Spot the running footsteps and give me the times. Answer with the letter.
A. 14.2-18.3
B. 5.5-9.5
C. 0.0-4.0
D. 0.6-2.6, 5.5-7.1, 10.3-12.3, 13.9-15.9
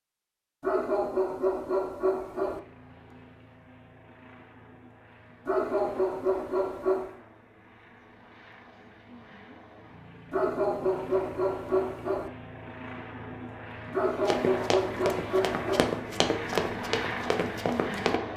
A.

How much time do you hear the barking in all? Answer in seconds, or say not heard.
8 s.